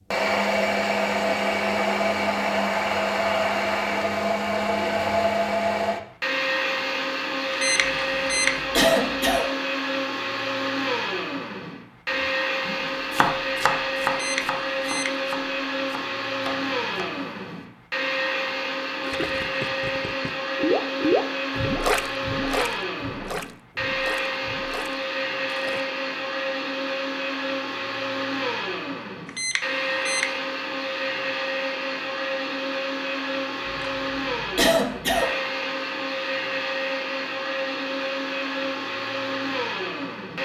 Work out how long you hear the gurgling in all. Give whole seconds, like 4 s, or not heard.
7 s.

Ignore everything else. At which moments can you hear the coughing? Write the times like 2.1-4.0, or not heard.
7.8-9.4, 33.6-35.3.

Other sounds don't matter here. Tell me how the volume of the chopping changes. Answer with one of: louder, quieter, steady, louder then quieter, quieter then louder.
quieter.